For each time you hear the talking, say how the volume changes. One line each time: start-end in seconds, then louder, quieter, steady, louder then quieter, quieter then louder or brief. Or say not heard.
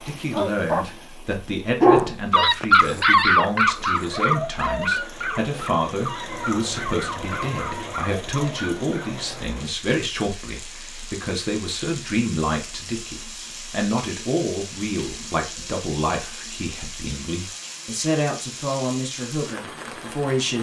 0.0-20.5 steady.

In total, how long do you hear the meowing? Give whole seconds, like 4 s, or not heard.
2 s.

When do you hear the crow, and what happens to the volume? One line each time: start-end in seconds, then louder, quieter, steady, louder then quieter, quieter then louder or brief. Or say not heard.
not heard.